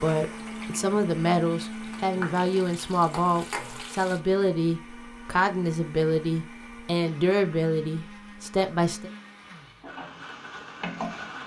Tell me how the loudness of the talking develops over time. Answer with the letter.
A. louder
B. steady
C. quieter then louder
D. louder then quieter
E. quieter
B.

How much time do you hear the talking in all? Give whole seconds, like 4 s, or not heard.
9 s.